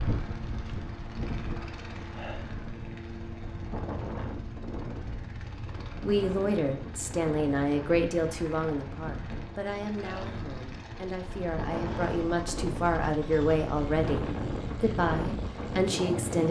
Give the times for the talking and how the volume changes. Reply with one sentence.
You can hear the talking from 6.0 to 16.4 s, getting quieter then louder.